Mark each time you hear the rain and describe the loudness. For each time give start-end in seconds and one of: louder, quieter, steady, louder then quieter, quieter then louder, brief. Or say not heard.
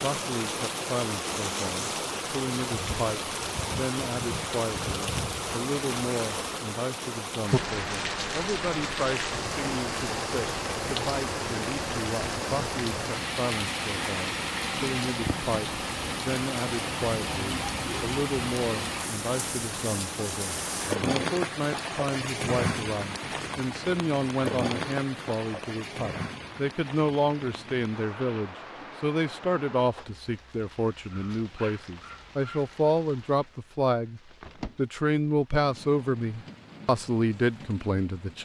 0.0-38.4 quieter.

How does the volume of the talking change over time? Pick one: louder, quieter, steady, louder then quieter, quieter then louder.
louder.